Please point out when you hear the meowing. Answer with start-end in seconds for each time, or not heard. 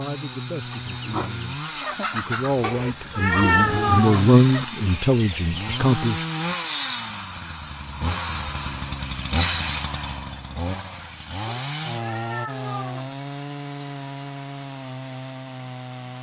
2.6-4.3, 11.4-13.2.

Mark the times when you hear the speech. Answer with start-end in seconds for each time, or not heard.
0.0-6.2.